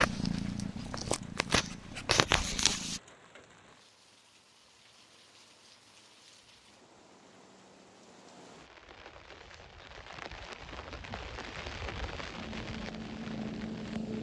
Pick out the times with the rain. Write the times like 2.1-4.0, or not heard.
0.2-14.1.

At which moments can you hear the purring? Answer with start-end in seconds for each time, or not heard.
0.0-3.0, 12.3-14.1.